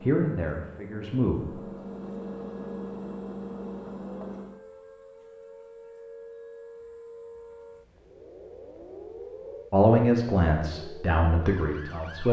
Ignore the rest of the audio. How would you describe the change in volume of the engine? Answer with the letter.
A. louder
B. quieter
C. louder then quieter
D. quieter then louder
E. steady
A.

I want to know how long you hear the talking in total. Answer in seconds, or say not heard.
4 s.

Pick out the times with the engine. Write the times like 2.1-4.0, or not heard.
0.0-4.6.